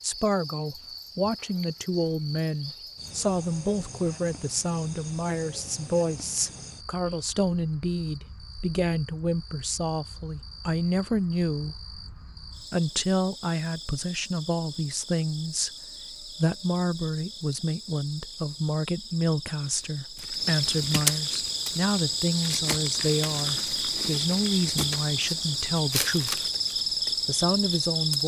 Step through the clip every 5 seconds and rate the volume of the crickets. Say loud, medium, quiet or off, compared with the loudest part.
quiet, quiet, quiet, quiet, loud, loud.